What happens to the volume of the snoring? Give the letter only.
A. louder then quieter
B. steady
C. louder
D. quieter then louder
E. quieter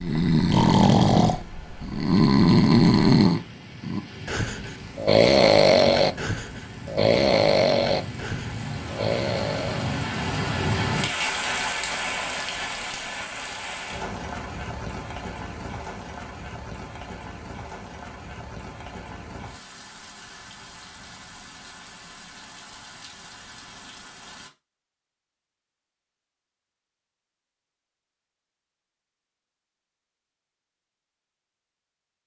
E.